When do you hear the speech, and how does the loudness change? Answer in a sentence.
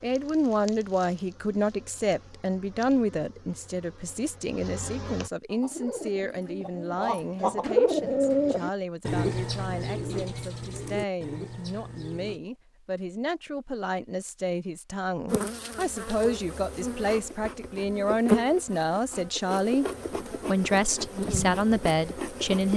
The speech can be heard from 0.0 to 22.7 s, getting quieter then louder.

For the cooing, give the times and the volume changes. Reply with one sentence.
The cooing can be heard from 5.5 to 12.4 s, getting louder then quieter.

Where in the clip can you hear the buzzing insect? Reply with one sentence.
You can hear the buzzing insect from 0.0 to 5.3 s and from 15.2 to 22.7 s.